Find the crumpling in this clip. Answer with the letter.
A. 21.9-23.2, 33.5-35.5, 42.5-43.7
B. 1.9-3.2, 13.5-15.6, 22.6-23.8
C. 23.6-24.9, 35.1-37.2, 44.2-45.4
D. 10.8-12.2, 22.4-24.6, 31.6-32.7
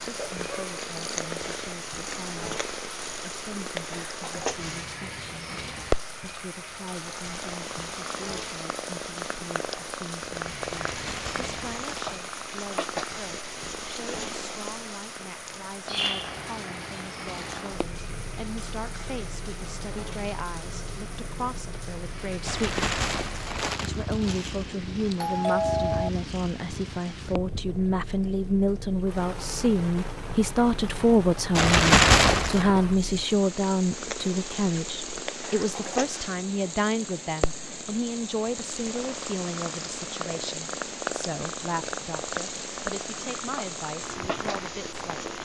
D.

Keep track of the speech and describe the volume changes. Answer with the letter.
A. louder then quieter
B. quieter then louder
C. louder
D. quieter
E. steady
A.